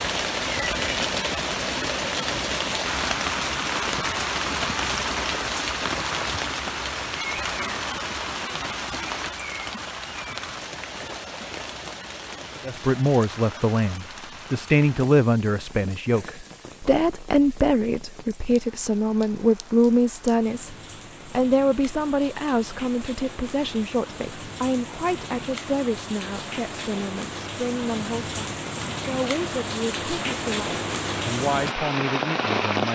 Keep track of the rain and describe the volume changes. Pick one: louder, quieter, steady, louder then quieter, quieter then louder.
quieter then louder.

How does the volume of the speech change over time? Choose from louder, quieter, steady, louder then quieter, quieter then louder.
quieter.